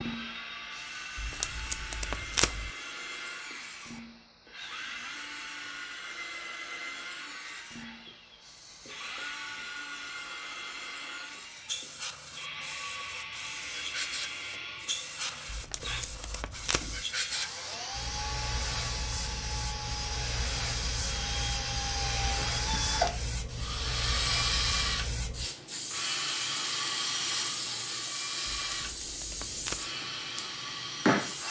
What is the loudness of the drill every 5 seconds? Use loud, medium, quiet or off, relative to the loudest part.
medium, medium, medium, medium, loud, loud, medium.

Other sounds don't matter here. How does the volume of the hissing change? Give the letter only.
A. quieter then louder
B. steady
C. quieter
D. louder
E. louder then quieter
D.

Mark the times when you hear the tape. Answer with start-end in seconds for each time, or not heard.
1.1-2.7, 15.4-17.1, 28.5-29.9.